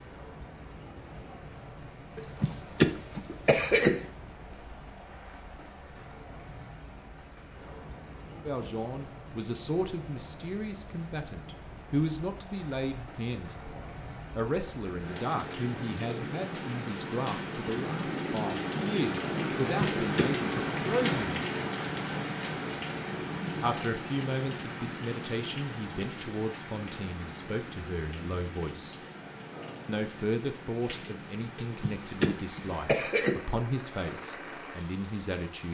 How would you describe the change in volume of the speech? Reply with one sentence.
The loudness of the speech stays about the same.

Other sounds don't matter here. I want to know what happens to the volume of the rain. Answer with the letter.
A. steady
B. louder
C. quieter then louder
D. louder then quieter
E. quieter
D.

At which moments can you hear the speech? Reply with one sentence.
The speech can be heard from 8.3 to 21.4 s, from 23.6 to 29.0 s and from 29.9 to 35.6 s.